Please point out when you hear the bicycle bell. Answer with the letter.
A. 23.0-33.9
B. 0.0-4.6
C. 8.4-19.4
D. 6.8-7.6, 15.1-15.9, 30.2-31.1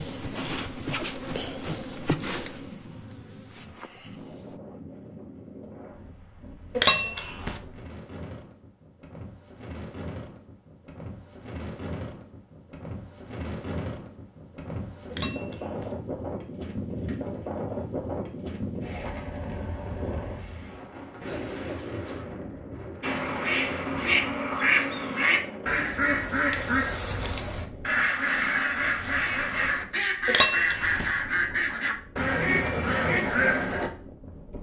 D.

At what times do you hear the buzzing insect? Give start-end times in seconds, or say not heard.
0.0-4.6.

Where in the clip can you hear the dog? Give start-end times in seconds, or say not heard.
not heard.